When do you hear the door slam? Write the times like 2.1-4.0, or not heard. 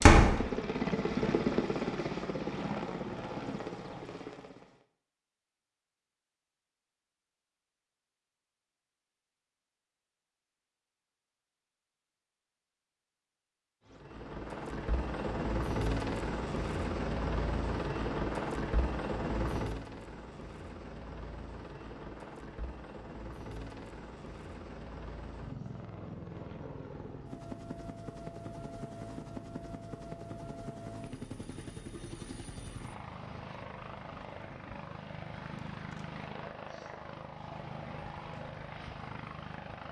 0.0-0.4.